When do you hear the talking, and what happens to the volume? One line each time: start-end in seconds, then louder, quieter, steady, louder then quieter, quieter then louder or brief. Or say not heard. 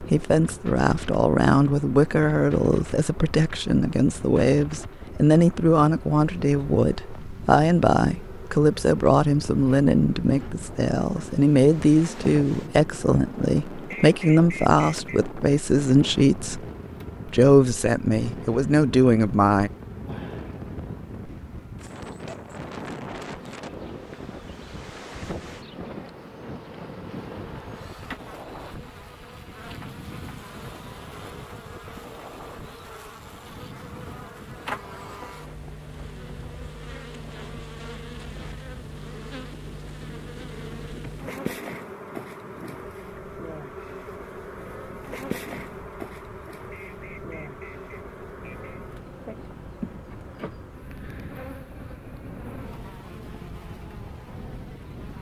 0.0-16.6 steady
17.2-19.7 brief.